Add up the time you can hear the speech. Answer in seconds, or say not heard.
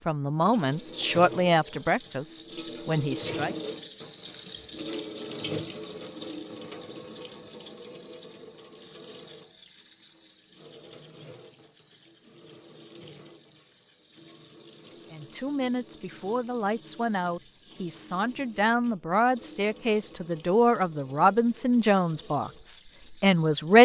12 s.